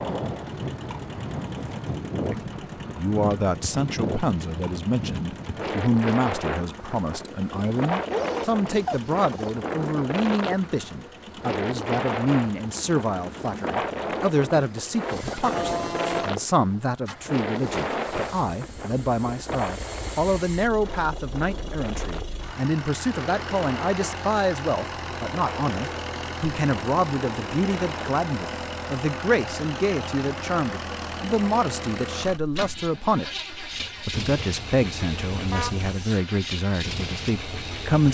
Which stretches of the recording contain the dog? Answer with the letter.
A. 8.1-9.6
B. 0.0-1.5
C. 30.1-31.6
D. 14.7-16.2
A.